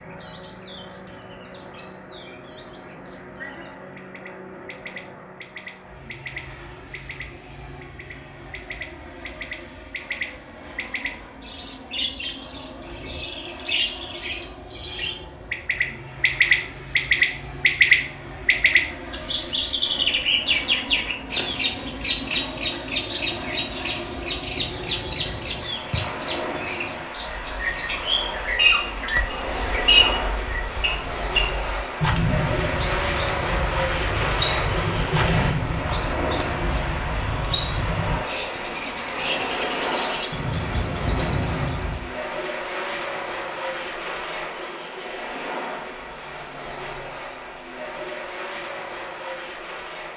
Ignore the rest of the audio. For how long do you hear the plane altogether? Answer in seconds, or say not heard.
50 s.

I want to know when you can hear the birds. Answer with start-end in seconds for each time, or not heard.
0.0-42.1.